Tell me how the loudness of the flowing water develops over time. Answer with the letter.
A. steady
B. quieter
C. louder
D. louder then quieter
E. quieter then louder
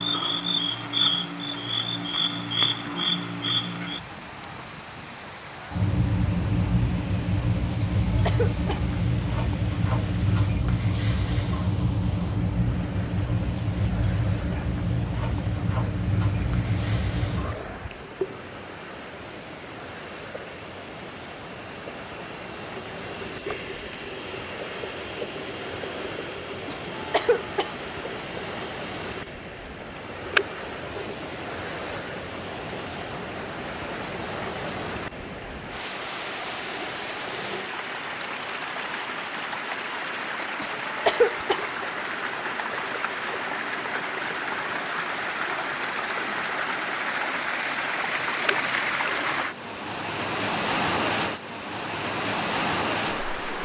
C.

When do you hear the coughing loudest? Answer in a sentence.
The volume of the coughing peaks at 41 seconds.